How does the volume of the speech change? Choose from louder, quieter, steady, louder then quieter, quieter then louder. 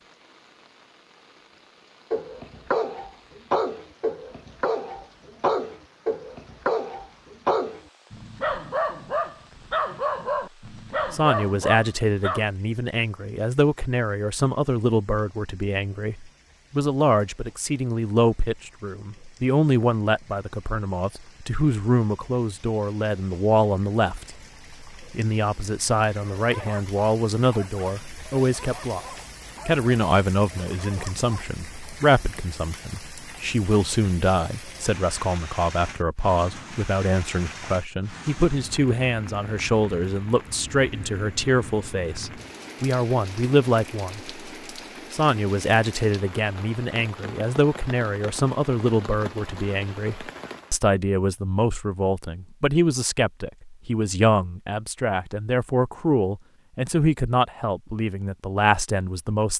steady.